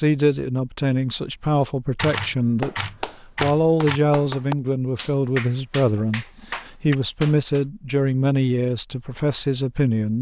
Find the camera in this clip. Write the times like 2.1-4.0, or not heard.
1.9-4.0.